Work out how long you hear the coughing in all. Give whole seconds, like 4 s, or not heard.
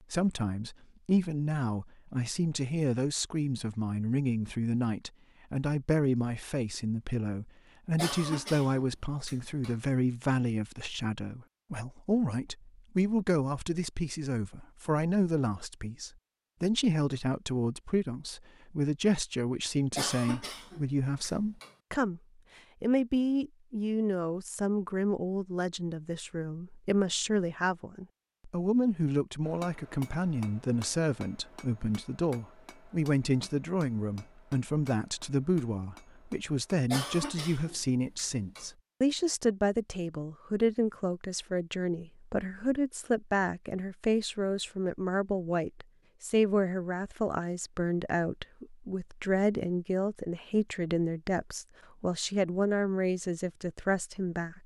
5 s.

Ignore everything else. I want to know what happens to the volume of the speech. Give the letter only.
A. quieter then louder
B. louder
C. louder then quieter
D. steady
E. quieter
D.